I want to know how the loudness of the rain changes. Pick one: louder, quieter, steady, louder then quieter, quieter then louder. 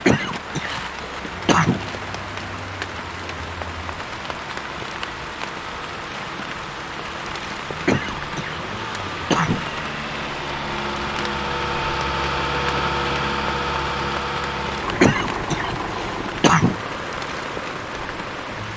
steady.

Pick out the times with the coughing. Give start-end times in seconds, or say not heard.
0.1-1.9, 7.8-9.7, 15.0-16.9.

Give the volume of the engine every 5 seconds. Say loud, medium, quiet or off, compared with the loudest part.
quiet, medium, loud, medium.